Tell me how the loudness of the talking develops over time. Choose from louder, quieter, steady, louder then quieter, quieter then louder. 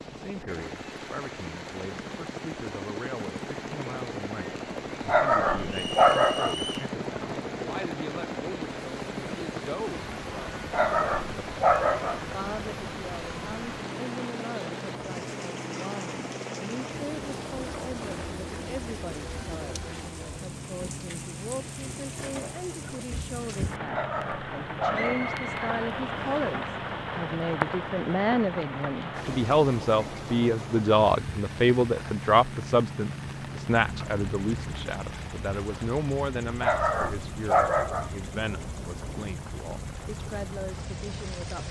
louder then quieter.